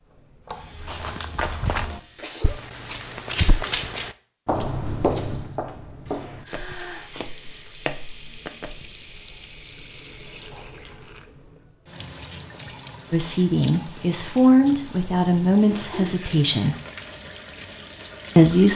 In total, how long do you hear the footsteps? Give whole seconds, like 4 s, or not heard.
8 s.